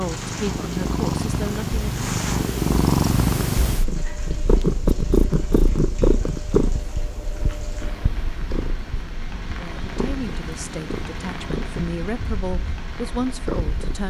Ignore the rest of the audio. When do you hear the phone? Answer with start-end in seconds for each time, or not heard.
not heard.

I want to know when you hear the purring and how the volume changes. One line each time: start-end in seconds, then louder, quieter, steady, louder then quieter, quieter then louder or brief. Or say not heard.
0.0-14.0 quieter.